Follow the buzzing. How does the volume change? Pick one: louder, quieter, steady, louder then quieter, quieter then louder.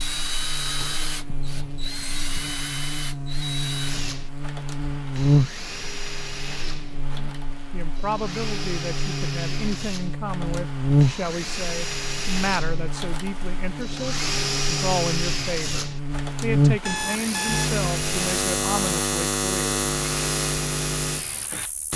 louder.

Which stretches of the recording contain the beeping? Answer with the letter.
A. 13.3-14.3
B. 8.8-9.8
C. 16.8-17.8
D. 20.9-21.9
C.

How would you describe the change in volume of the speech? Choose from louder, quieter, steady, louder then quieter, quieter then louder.
steady.